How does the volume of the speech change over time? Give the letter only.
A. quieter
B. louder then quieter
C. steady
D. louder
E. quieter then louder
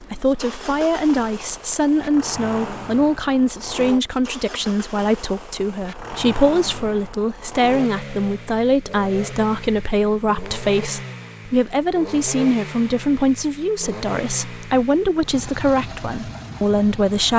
C.